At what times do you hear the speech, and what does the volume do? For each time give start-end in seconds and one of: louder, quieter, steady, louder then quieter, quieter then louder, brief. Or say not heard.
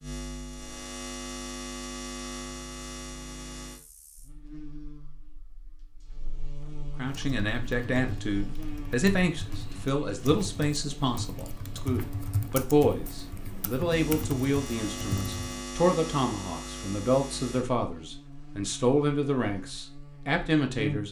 7.0-21.0 steady.